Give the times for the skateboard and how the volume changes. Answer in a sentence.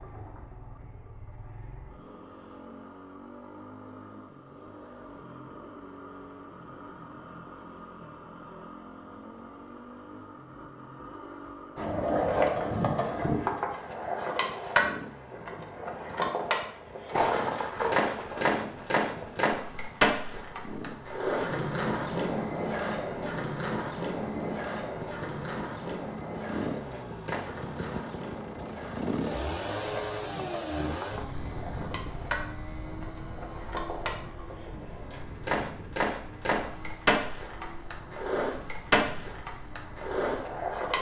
The skateboard can be heard from 11.8 to 40.9 s, getting quieter then louder.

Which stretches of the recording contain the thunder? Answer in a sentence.
You can hear the thunder from 17.1 to 19.4 s.